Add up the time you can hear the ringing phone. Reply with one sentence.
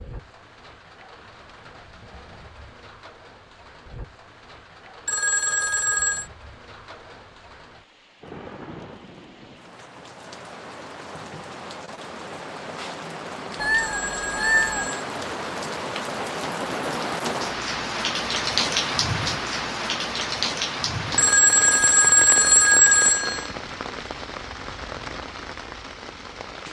The ringing phone can be heard for 5 seconds in total.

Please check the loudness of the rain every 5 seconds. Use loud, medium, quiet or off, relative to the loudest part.
quiet, quiet, medium, loud, loud, medium.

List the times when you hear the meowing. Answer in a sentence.
The meowing can be heard from 13.6 to 14.9 s.